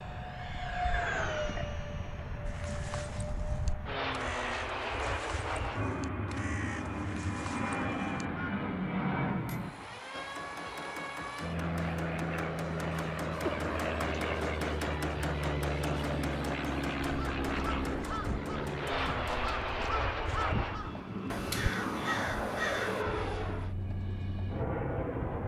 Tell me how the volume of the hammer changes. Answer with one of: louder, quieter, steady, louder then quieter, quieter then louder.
louder then quieter.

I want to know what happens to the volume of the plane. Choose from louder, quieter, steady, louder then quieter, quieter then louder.
steady.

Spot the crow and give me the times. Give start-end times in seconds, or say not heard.
2.5-8.5, 17.0-23.1.